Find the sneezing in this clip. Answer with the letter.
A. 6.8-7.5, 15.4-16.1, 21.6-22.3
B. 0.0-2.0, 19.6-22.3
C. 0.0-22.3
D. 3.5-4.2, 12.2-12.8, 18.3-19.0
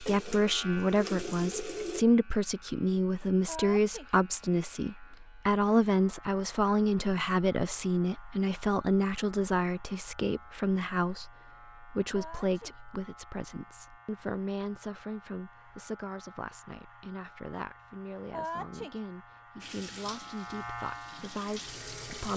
D.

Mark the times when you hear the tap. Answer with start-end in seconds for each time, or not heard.
0.0-2.0, 19.6-22.3.